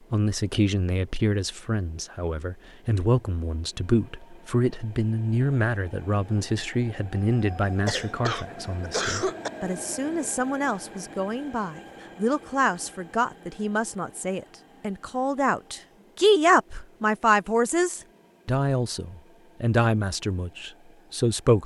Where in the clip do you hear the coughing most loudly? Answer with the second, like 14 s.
9 s.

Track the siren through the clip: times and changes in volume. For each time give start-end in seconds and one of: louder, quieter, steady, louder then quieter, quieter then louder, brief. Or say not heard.
not heard.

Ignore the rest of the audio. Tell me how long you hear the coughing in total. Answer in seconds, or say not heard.
2 s.